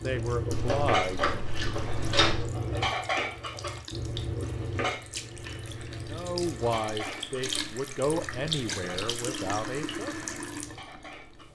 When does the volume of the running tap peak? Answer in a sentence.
The loudest moment of the running tap is at 9 seconds.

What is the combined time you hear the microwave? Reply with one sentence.
The microwave can't be heard in this clip.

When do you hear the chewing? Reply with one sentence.
You can hear the chewing from 0.5 to 2.5 s and from 6.6 to 7.3 s.